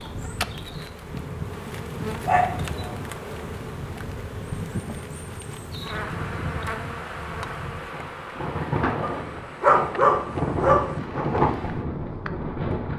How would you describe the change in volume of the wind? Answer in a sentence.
The volume of the wind goes up.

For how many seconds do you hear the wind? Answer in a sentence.
You can hear the wind for 13 seconds altogether.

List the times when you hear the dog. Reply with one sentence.
You can hear the dog from 2.2 to 3.0 s and from 9.0 to 11.0 s.